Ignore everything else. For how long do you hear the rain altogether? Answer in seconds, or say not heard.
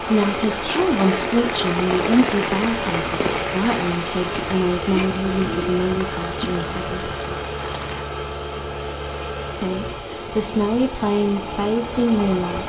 8 s.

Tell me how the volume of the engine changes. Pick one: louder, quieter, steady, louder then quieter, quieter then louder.
steady.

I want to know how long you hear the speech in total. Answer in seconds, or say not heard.
10 s.